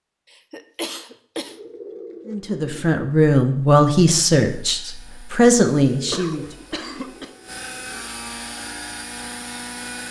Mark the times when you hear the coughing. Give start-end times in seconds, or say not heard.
0.3-1.6, 6.1-7.3.